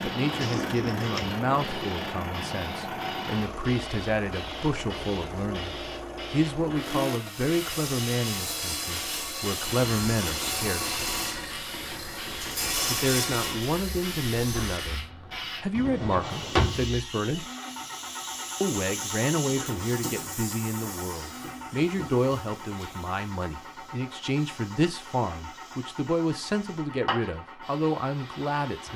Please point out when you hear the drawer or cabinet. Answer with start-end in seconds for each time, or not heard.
0.4-1.4, 15.8-16.9.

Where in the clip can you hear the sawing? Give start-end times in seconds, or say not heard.
7.2-15.1.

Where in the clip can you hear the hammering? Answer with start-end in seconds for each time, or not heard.
not heard.